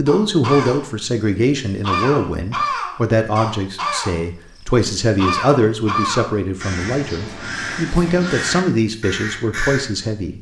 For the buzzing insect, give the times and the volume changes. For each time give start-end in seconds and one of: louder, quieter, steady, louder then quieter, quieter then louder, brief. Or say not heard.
not heard.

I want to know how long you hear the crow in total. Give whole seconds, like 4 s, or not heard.
10 s.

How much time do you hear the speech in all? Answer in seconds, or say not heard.
10 s.